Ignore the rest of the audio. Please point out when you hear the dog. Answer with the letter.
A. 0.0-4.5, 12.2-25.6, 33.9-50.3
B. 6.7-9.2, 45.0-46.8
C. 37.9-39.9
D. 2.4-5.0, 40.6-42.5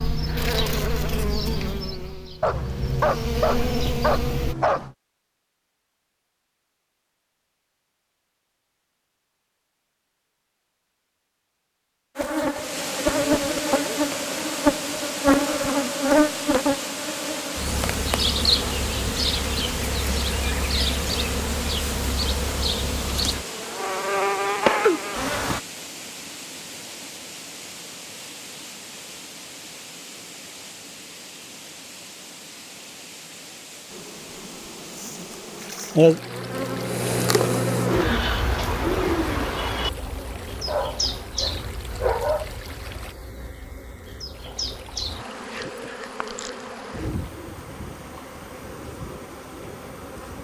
D.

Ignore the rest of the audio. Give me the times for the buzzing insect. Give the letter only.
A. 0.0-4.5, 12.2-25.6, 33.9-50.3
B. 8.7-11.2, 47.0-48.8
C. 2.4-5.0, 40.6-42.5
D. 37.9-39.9
A.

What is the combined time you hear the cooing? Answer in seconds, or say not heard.
2 s.